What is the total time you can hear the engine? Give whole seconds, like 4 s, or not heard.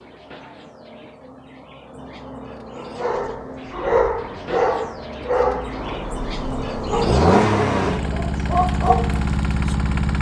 6 s.